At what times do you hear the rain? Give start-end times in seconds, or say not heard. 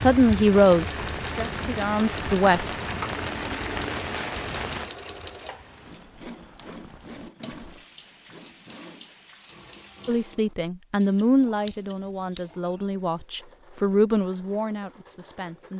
0.0-10.3.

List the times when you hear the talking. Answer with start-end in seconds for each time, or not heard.
0.0-2.7, 10.1-15.7.